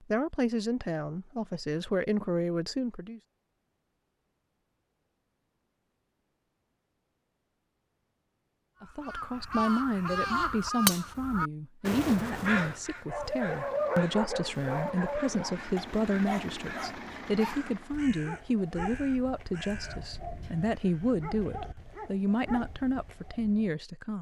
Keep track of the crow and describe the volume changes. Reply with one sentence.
The volume of the crow goes down.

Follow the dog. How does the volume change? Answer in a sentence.
The volume of the dog goes down.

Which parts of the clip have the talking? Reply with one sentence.
You can hear the talking from 0.0 to 3.2 s and from 8.8 to 24.1 s.